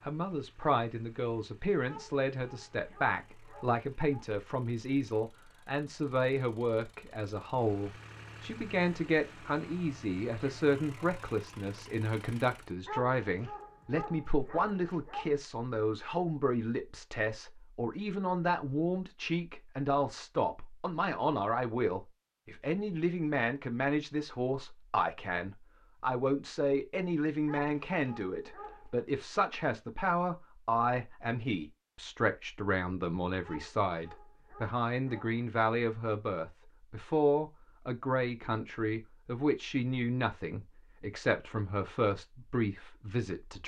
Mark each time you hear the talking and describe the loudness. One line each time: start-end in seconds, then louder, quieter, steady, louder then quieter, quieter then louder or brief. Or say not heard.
0.1-43.6 steady.